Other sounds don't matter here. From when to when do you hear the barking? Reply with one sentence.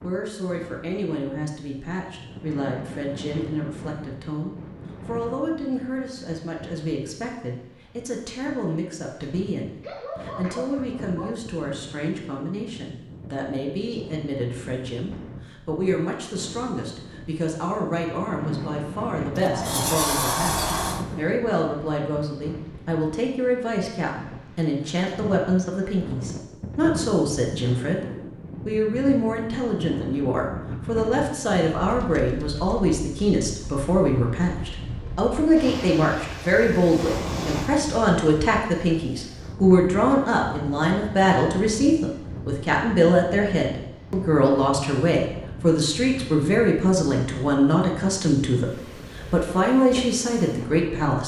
You can hear the barking from 9.8 to 11.3 s.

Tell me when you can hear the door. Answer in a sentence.
The door can be heard from 19.4 to 21.1 s.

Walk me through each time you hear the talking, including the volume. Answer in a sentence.
The talking can be heard from 0.0 to 51.2 s, getting louder.